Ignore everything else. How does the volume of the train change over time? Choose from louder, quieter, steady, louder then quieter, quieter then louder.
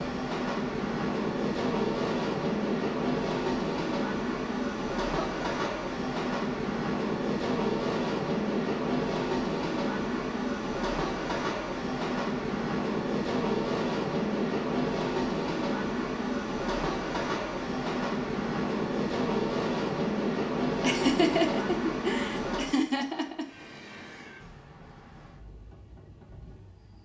quieter.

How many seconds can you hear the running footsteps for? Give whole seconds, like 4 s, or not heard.
not heard.